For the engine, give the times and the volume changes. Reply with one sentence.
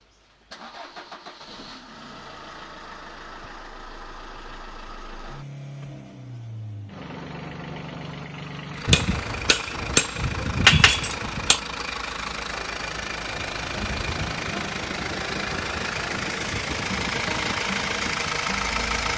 You can hear the engine from 0.0 to 19.1 s, getting louder.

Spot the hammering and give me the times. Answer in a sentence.
You can hear the hammering from 8.8 to 11.6 s.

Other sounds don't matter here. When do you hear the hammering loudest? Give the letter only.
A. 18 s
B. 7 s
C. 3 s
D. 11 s
D.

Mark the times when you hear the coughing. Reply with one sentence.
The coughing can't be heard in this clip.